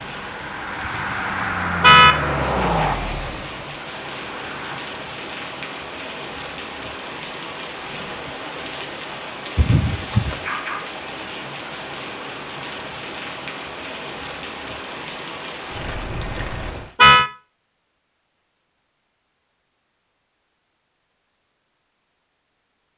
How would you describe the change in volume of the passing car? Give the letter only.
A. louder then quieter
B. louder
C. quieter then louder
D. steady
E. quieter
A.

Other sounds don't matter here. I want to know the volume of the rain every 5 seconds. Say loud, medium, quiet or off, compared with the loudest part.
loud, loud, loud, loud, off.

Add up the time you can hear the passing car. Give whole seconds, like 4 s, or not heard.
5 s.